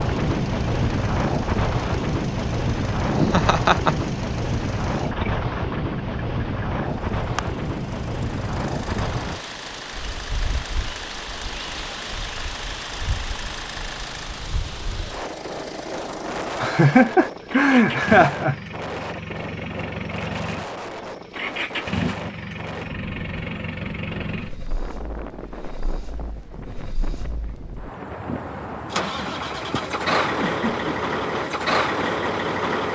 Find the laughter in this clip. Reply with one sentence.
The laughter can be heard from 3.1 to 4.0 s, from 16.6 to 18.6 s and from 30.4 to 30.9 s.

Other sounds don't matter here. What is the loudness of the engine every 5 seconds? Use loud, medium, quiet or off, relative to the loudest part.
quiet, quiet, quiet, medium, medium, medium, loud.